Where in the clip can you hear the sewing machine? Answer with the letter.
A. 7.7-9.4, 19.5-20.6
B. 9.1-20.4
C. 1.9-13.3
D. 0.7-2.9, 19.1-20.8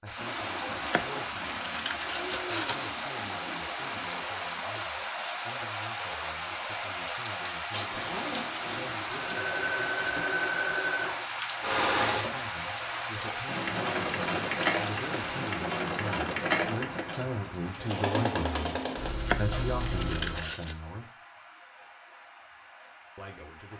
B.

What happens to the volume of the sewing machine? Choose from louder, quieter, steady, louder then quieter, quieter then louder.
steady.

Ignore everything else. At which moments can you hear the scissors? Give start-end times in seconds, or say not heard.
0.7-2.9, 19.1-20.8.